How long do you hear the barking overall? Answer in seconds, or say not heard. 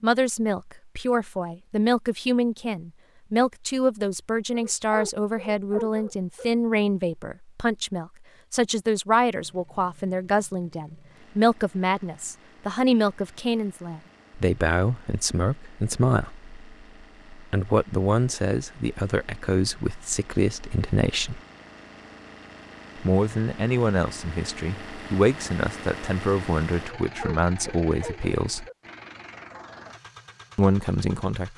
4 s.